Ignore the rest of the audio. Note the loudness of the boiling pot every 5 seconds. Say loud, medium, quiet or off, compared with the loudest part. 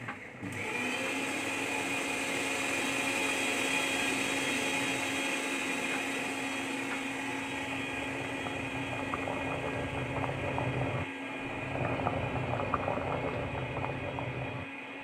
quiet, medium, loud.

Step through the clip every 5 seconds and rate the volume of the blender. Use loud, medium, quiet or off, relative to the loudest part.
loud, loud, medium.